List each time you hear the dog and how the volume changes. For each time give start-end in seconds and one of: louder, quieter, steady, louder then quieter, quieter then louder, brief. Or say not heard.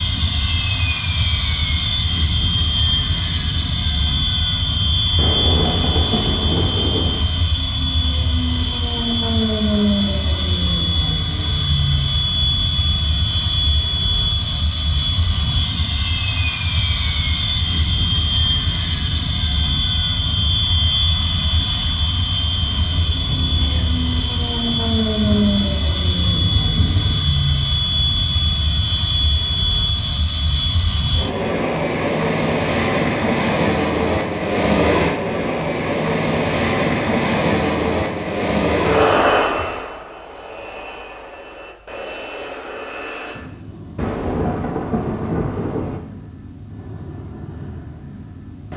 not heard.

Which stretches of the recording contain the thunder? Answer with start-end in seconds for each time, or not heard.
5.2-7.2, 22.6-27.2, 44.0-46.0.